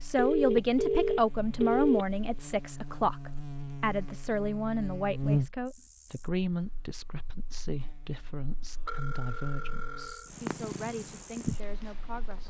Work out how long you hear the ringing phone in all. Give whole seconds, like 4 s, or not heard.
3 s.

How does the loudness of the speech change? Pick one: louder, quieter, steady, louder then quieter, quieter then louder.
quieter.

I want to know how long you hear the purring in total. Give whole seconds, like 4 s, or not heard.
2 s.